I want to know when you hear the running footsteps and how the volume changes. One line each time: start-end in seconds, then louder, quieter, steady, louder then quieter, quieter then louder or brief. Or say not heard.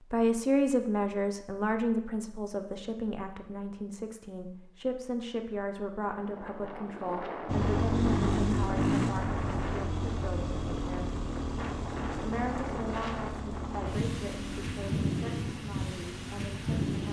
not heard.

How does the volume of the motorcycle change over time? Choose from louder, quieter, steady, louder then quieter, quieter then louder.
quieter.